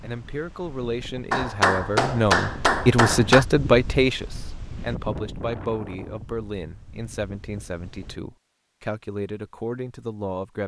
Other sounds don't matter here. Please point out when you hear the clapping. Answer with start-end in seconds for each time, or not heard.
1.3-3.5.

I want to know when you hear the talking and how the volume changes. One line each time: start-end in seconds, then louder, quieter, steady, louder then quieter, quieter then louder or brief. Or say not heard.
0.0-10.6 louder then quieter.